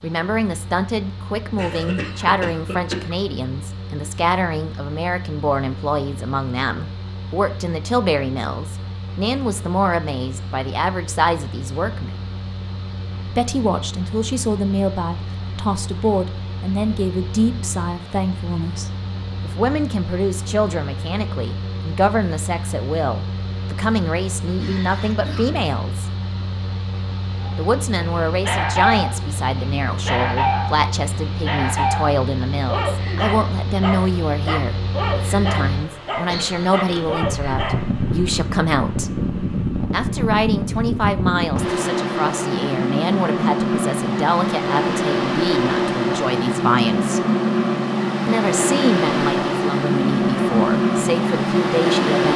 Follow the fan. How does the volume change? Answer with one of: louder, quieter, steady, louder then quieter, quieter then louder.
louder.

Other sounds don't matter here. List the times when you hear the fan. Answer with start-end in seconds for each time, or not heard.
0.0-52.3.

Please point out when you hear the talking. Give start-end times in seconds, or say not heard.
0.0-12.2, 13.2-26.1, 27.6-39.1, 39.9-47.2, 48.2-52.3.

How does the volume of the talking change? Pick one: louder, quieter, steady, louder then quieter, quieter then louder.
steady.